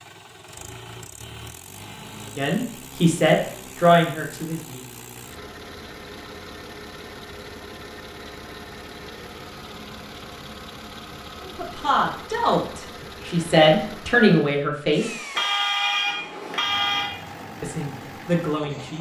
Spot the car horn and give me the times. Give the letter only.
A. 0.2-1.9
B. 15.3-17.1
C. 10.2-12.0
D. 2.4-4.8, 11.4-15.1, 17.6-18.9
B.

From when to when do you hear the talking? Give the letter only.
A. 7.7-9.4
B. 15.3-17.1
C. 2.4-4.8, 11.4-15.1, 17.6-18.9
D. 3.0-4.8
C.